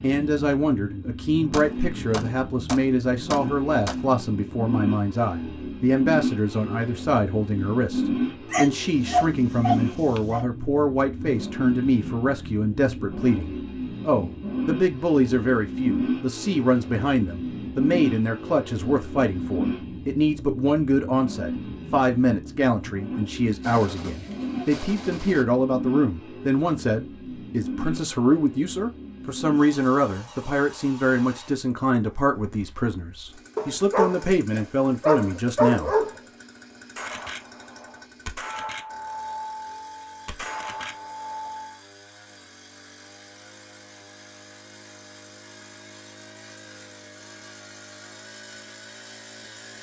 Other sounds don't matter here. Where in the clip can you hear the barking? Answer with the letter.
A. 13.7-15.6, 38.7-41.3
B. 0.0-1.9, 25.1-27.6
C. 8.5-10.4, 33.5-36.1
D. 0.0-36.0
C.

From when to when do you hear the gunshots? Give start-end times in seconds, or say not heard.
1.5-4.0, 23.6-25.4, 37.0-41.8.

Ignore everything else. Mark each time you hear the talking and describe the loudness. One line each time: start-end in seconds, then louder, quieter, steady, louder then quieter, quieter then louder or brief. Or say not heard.
0.0-36.0 steady.